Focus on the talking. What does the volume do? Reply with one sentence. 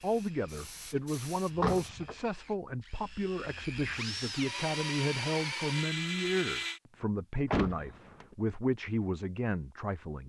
The loudness of the talking stays about the same.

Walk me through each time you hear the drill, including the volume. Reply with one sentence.
You can hear the drill from 0.0 to 6.8 s, getting louder.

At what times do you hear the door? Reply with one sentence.
You can hear the door from 1.5 to 2.1 s and from 7.5 to 8.3 s.